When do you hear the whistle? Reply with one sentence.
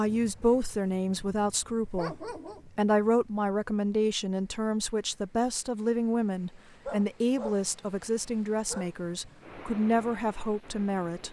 The whistle can't be heard in this clip.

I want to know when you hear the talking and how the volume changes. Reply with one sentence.
The talking can be heard from 0.0 to 11.2 s, at a steady volume.